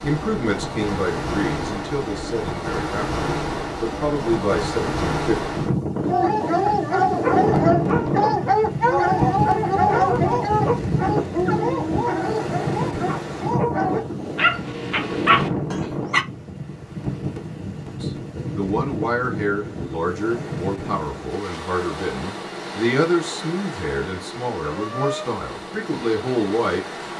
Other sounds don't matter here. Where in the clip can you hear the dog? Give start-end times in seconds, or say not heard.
6.1-16.2.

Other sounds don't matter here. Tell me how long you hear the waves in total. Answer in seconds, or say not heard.
27 s.